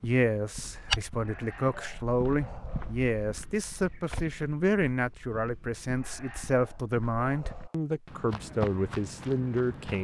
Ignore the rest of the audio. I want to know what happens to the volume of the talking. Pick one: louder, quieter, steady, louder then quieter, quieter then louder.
steady.